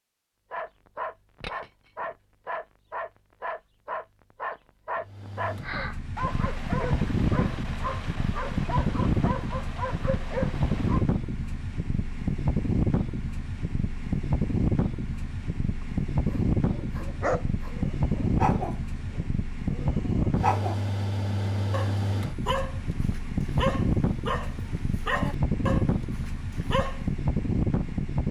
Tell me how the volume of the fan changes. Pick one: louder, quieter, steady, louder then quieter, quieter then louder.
steady.